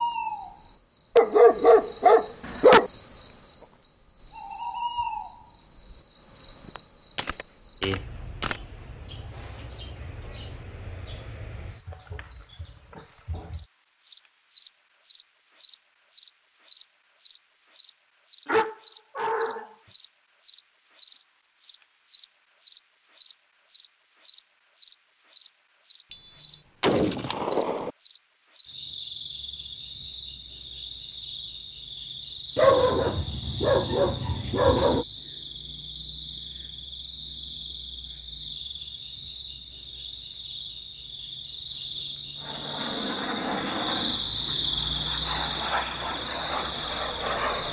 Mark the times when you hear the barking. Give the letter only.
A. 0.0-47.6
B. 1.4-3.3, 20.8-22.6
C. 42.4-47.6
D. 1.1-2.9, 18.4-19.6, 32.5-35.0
D.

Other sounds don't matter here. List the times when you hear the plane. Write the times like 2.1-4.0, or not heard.
42.4-47.6.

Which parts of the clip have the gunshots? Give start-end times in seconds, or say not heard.
6.7-8.6, 26.1-27.9.